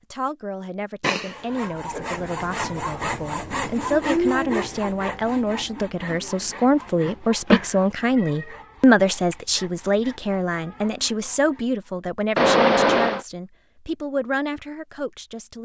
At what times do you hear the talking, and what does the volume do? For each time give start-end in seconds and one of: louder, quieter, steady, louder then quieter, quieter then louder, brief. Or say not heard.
0.1-15.6 louder then quieter.